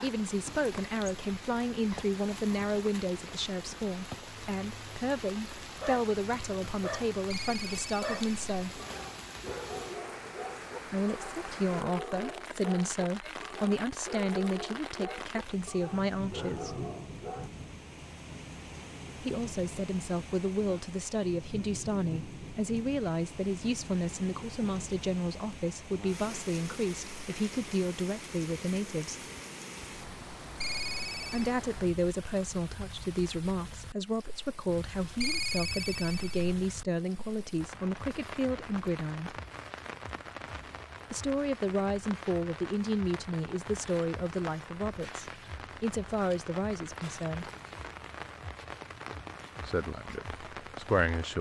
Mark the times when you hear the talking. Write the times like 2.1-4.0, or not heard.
0.0-8.8, 10.9-16.9, 19.2-29.2, 31.2-39.4, 41.1-47.5, 49.6-51.3.